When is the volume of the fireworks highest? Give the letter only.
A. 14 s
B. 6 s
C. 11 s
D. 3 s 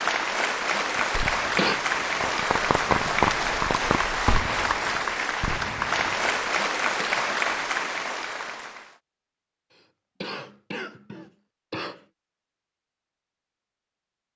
D.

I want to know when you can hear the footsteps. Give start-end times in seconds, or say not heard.
not heard.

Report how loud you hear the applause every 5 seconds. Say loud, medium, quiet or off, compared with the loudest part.
loud, loud, off.